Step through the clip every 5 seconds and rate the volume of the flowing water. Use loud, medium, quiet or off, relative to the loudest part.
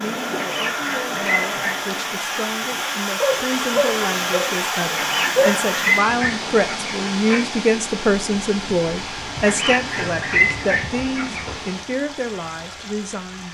loud, loud, medium.